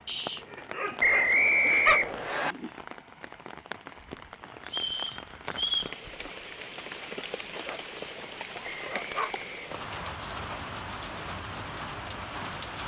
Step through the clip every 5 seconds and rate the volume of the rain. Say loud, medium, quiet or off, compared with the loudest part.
medium, loud, loud.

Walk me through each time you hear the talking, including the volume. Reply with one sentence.
The talking can't be heard in this clip.